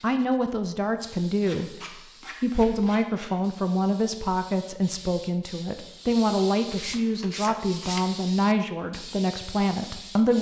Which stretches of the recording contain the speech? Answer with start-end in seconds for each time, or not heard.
0.0-10.3.